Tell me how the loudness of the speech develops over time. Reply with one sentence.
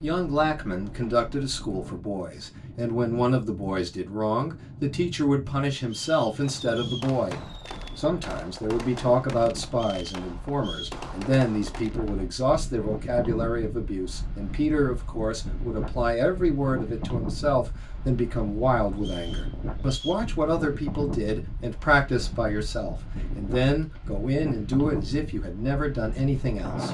The loudness of the speech stays about the same.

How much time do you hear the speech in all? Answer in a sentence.
The speech can be heard for 27 seconds in total.